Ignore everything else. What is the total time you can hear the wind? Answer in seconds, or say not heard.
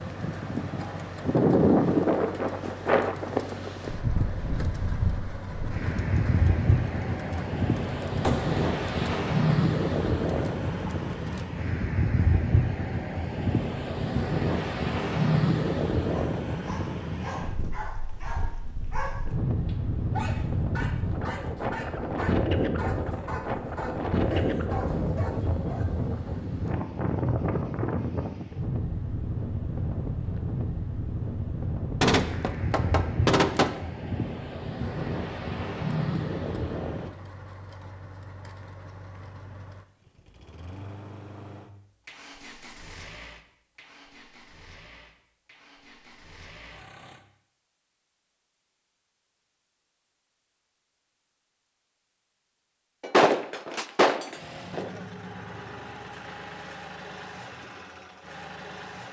37 s.